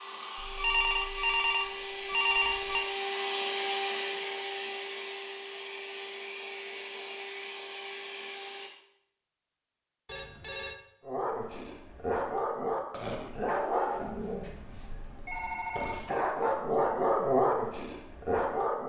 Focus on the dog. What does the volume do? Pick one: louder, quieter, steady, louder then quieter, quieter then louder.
quieter then louder.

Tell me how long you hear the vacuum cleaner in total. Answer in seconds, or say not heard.
9 s.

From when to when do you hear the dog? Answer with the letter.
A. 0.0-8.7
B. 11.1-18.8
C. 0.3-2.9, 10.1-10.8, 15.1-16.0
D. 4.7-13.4
B.